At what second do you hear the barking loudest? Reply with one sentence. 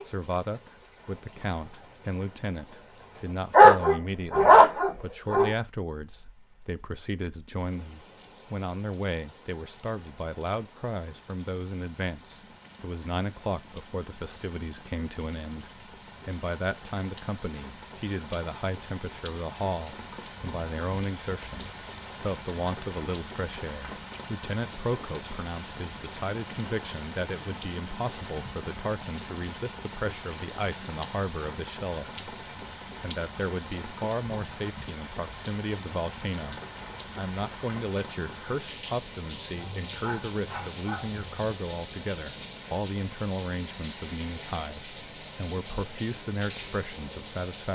The volume of the barking peaks at 4 seconds.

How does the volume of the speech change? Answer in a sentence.
The volume of the speech stays about the same.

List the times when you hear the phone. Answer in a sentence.
You can't hear the phone here.